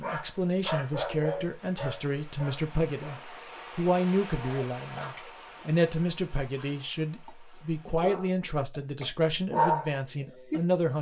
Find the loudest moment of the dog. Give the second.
10 s.